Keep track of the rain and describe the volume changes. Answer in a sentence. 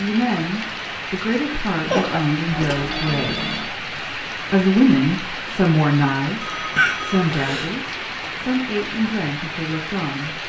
The volume of the rain stays about the same.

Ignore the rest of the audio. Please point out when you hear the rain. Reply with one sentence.
You can hear the rain from 0.0 to 10.4 s.